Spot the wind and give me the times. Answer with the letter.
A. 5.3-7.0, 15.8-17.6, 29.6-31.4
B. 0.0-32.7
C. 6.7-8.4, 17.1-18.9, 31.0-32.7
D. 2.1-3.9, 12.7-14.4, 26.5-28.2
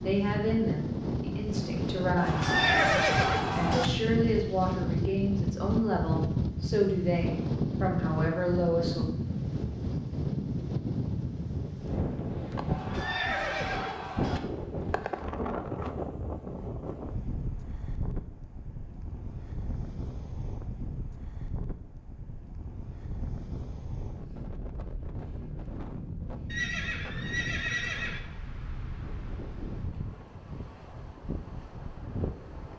B.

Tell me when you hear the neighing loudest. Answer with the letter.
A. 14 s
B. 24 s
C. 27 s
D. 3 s
D.